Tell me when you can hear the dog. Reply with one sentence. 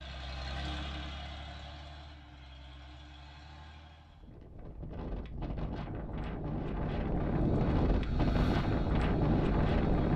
You can't hear the dog here.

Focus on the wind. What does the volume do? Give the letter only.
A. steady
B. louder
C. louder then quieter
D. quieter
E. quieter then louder
B.